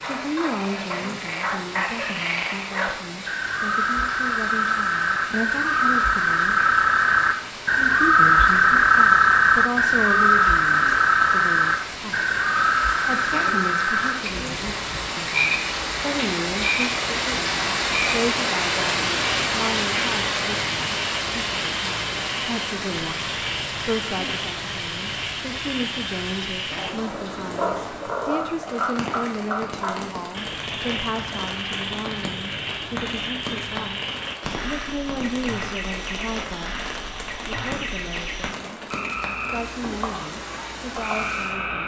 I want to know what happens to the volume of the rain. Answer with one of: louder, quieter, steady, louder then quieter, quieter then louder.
louder then quieter.